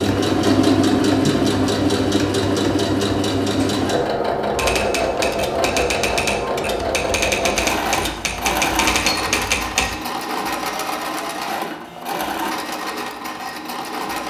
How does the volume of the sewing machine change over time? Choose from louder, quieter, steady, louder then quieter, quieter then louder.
quieter.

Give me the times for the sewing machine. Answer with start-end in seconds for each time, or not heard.
0.0-14.2.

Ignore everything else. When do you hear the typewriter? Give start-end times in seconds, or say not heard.
4.5-9.9.